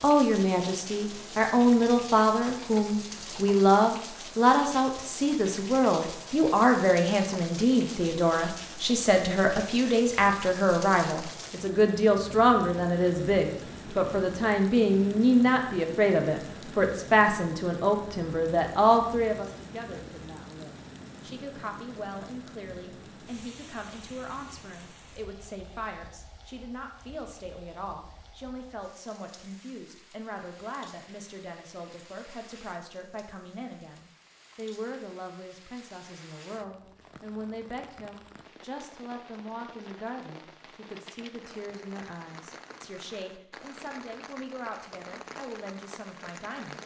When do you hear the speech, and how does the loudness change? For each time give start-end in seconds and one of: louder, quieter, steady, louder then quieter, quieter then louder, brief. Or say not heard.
0.0-46.8 quieter.